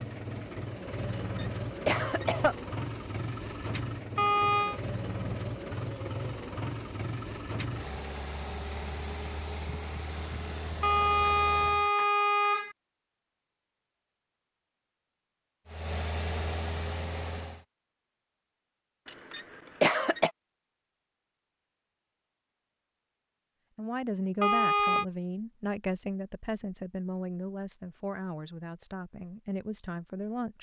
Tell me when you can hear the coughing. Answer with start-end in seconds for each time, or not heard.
1.1-2.5, 19.1-20.3.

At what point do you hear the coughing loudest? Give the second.
20 s.